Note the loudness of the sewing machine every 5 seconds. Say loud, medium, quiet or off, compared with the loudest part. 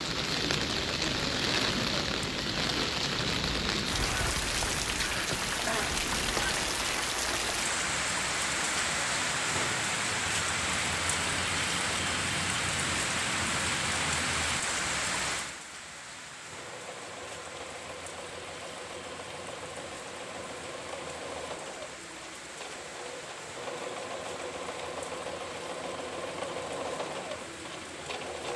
off, off, off, medium, loud, loud.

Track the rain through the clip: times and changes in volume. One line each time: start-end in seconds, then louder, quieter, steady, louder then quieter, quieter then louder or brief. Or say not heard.
0.0-28.5 quieter.